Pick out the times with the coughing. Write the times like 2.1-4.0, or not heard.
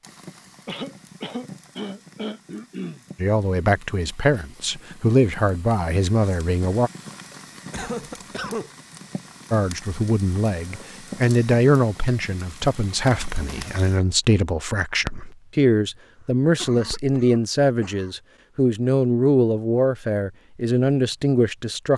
0.7-3.0, 7.7-8.7, 16.2-18.1.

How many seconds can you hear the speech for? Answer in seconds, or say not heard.
16 s.